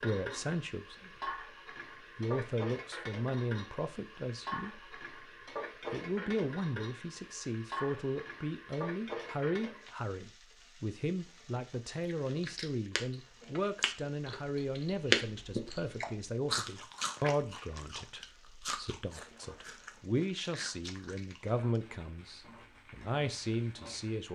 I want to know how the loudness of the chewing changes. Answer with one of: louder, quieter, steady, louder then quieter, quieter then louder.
louder then quieter.